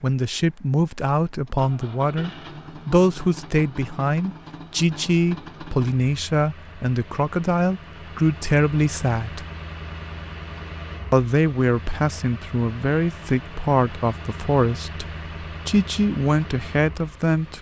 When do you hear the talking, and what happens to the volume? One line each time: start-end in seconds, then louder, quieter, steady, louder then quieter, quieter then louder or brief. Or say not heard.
0.0-9.4 steady
11.1-17.5 steady.